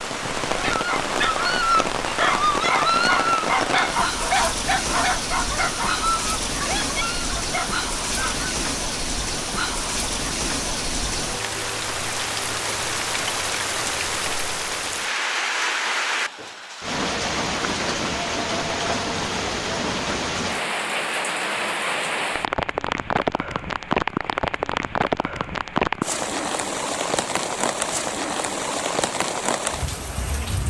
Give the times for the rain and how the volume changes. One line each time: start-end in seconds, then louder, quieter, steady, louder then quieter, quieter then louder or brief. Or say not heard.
0.0-30.6 steady.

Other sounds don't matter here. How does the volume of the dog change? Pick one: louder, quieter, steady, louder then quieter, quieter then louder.
quieter.